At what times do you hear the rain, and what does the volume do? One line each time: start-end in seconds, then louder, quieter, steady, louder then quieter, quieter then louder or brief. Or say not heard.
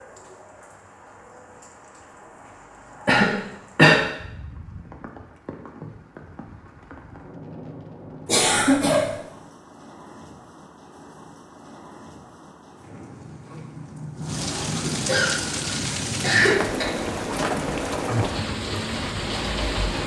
0.0-20.0 louder.